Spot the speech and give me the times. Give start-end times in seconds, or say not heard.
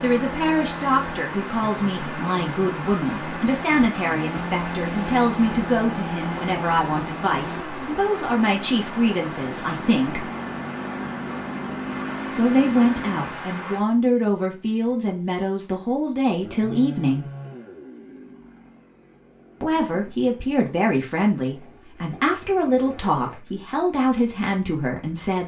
0.0-10.2, 12.3-17.2, 19.6-25.4.